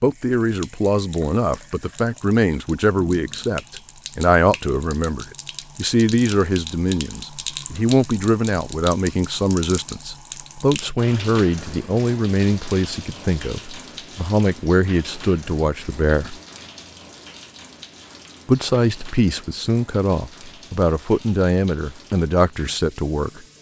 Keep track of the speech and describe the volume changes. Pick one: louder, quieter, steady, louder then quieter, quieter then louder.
steady.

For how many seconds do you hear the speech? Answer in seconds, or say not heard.
21 s.